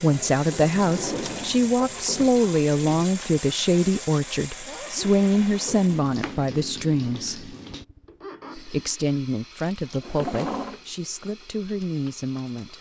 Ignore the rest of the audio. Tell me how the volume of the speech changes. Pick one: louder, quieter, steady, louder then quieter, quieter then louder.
quieter.